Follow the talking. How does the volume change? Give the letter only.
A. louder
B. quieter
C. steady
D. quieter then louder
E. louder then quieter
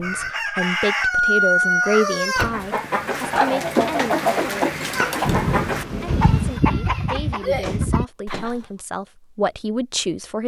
D.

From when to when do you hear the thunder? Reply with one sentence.
The thunder can be heard from 5.2 to 6.6 s.